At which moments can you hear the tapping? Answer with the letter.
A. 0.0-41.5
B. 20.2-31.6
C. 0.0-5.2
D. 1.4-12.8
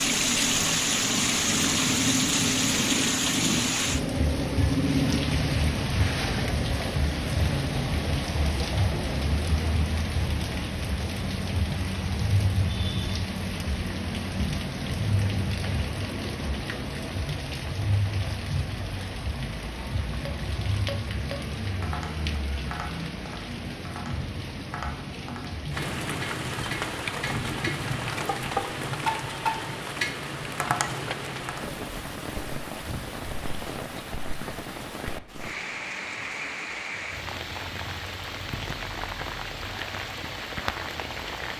B.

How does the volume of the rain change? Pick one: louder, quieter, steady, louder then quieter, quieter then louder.
quieter.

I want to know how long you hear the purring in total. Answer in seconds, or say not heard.
5 s.